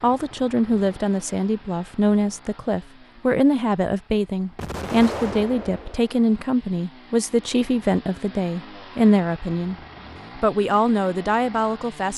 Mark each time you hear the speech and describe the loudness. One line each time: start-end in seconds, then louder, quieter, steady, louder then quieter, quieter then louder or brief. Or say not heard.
0.0-9.8 steady
10.3-12.1 brief.